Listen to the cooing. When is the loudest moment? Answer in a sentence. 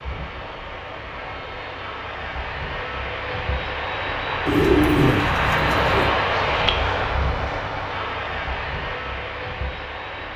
The volume of the cooing peaks at 5 seconds.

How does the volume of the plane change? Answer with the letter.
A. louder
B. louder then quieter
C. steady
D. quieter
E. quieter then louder
B.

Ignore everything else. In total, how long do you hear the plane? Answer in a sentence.
You can hear the plane for 10 seconds altogether.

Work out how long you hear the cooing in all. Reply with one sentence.
The cooing can be heard for 2 seconds in total.